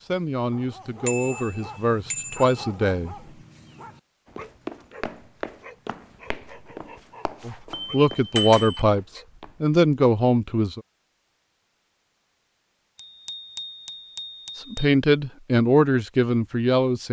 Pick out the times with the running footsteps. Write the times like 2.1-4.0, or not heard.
4.2-9.6.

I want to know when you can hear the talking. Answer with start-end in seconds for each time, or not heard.
0.1-3.1, 7.5-10.8, 14.6-17.0.